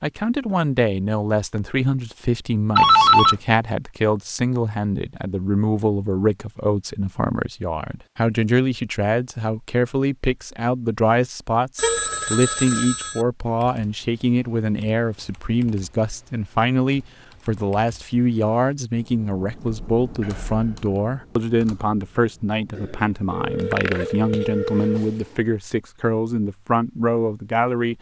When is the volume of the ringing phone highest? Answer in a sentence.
The loudest moment of the ringing phone is at 3 seconds.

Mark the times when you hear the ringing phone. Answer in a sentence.
The ringing phone can be heard from 2.8 to 3.4 s, from 11.8 to 13.2 s and from 22.8 to 25.1 s.